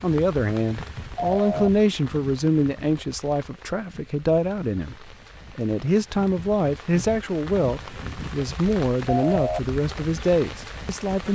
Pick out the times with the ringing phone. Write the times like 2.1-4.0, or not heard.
1.1-1.7, 9.1-9.6.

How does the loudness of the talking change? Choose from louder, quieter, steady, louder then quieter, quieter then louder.
steady.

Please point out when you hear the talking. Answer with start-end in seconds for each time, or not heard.
0.0-11.2.